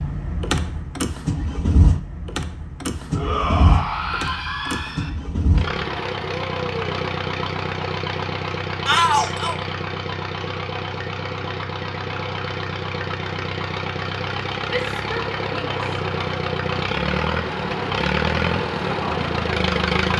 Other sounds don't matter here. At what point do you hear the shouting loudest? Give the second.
9 s.